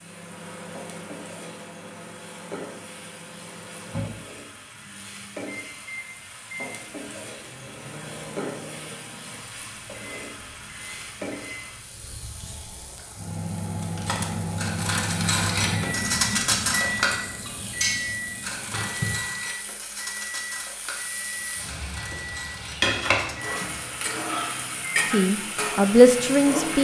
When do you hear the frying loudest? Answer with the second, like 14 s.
23 s.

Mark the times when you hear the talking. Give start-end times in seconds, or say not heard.
25.1-26.7.